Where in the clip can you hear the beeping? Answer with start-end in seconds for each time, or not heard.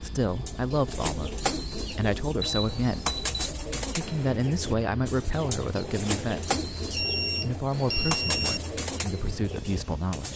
2.4-3.5, 7.0-8.6.